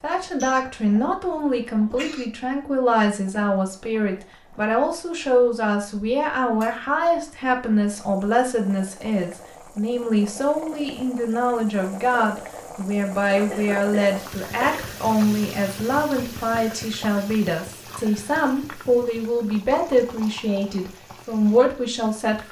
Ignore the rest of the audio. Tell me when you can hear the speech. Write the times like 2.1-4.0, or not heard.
0.0-22.4.